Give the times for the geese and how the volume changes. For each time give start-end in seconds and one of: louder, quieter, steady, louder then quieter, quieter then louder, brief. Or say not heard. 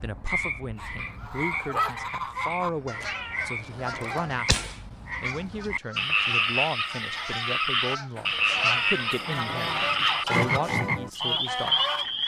0.8-12.1 quieter then louder.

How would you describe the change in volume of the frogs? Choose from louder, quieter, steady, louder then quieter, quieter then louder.
louder.